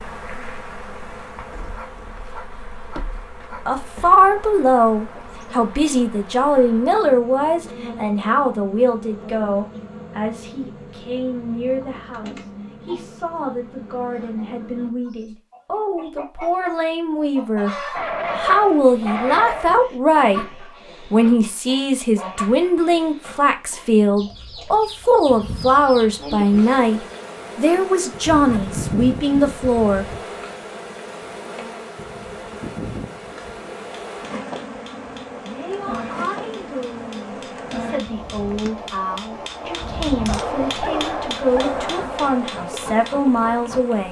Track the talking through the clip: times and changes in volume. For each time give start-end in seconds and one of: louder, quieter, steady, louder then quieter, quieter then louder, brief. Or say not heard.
3.6-30.1 quieter then louder
35.4-44.0 louder.